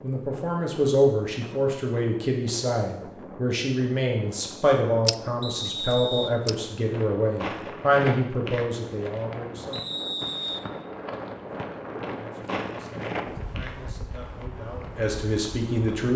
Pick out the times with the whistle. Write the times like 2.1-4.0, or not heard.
5.4-6.3, 9.7-10.7.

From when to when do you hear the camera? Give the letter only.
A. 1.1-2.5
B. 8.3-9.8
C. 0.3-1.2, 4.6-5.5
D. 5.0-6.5
D.